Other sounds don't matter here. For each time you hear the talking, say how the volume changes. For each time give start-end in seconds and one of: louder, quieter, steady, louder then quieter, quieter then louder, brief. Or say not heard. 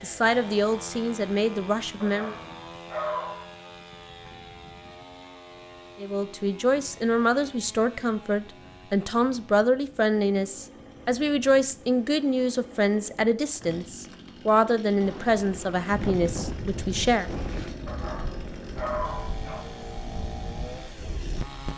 0.0-2.4 brief
6.0-17.3 steady.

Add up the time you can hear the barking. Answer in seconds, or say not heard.
3 s.